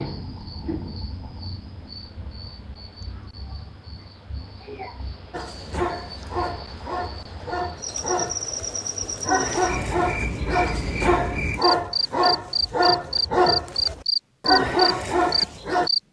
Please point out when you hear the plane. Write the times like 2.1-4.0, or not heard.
not heard.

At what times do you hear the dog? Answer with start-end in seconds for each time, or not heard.
5.3-15.9.